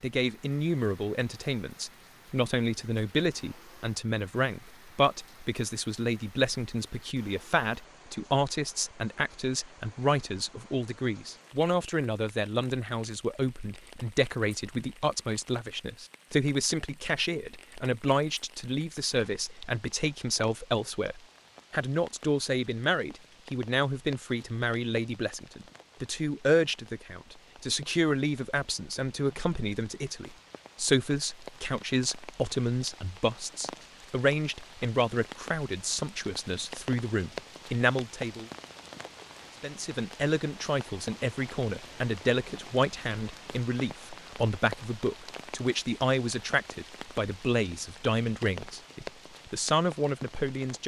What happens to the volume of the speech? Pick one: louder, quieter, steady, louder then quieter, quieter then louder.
steady.